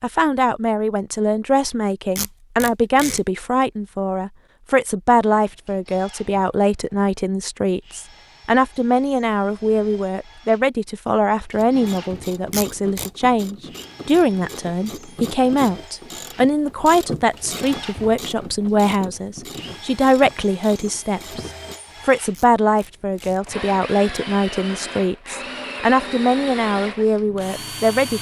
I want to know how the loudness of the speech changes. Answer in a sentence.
The loudness of the speech stays about the same.